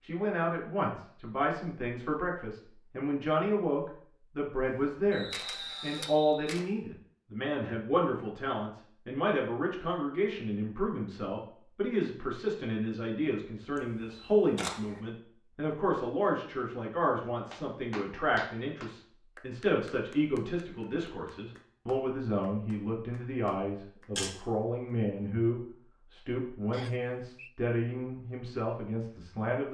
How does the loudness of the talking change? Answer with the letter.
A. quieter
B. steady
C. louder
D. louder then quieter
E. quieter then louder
B.